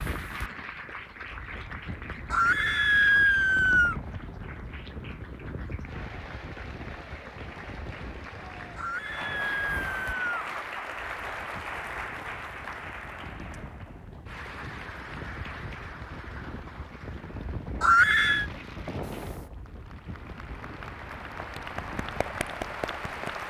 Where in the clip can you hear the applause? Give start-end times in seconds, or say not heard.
0.0-23.4.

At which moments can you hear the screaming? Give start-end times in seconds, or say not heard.
2.3-4.0, 8.8-10.5, 17.8-18.4.